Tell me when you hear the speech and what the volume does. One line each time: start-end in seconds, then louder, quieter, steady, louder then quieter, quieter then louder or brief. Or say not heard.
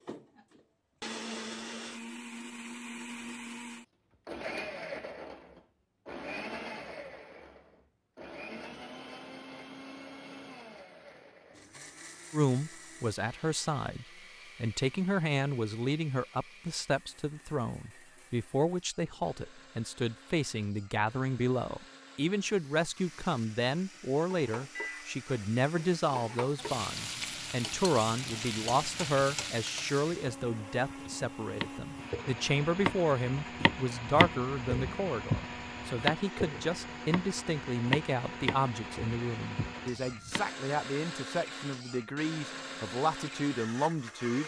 12.3-44.4 steady.